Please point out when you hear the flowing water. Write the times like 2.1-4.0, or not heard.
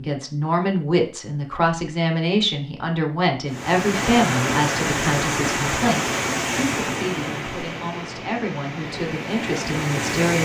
3.5-10.4.